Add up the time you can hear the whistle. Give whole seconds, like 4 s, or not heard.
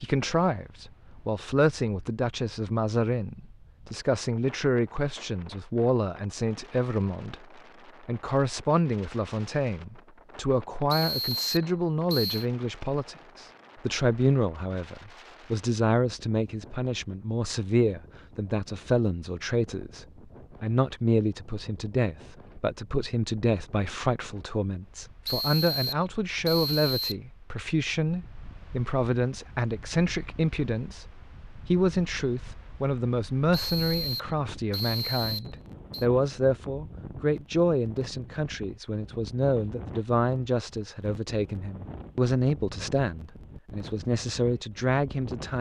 6 s.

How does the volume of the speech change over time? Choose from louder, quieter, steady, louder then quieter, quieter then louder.
steady.